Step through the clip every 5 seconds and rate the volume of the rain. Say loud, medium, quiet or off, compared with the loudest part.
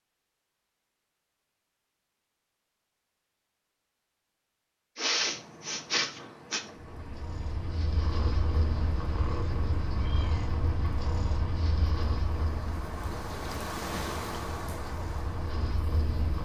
off, medium, loud, medium.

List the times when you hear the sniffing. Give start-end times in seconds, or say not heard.
5.0-6.6.